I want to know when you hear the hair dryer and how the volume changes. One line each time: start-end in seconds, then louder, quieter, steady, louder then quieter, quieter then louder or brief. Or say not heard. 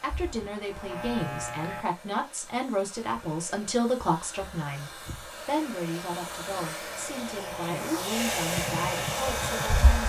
0.0-10.0 louder.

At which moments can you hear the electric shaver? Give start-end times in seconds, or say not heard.
0.0-1.9, 6.3-10.0.